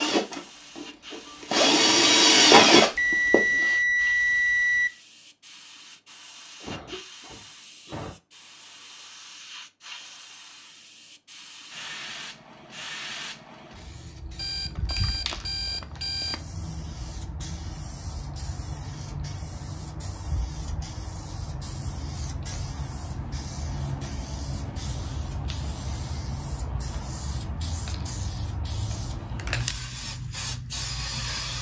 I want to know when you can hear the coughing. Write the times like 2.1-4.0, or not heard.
6.6-8.2.